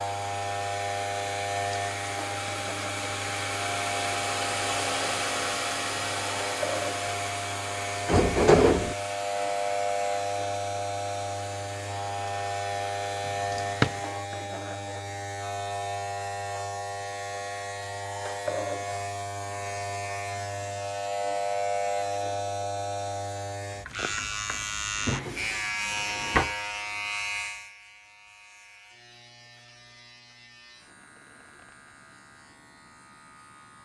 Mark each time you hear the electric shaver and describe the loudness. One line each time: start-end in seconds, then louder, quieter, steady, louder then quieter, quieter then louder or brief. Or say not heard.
0.0-33.7 quieter.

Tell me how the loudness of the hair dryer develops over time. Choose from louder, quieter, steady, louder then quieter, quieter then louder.
louder then quieter.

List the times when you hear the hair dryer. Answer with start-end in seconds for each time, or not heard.
0.0-14.2.